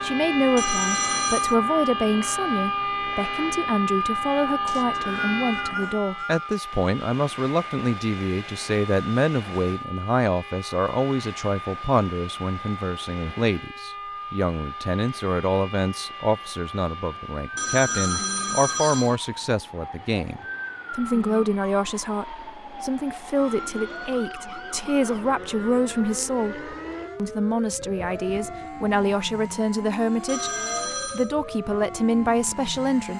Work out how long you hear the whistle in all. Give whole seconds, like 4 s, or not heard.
2 s.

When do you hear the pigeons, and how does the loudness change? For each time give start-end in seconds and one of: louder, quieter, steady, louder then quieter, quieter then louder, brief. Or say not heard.
not heard.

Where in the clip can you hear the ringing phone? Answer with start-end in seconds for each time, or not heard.
0.6-1.6, 17.6-19.2, 30.2-31.3.